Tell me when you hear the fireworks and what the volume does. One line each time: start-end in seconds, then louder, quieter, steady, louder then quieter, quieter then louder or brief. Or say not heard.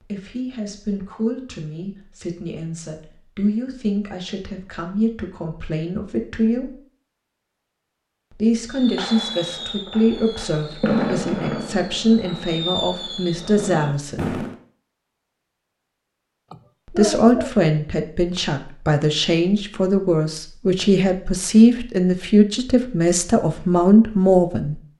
8.7-14.6 louder then quieter.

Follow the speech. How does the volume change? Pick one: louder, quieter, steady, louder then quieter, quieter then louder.
louder.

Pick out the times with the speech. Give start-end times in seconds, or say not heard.
0.0-6.8, 8.3-14.4, 16.9-24.8.